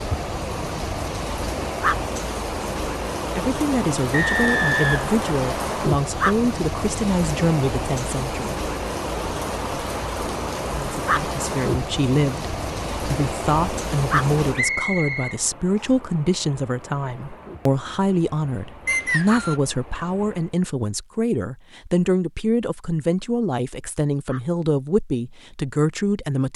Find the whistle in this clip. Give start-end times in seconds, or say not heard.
4.1-5.8, 14.6-15.9, 18.9-19.6.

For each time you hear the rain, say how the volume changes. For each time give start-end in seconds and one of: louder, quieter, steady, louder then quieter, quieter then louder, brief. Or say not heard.
0.0-20.6 quieter.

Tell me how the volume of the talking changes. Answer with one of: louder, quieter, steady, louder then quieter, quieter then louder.
steady.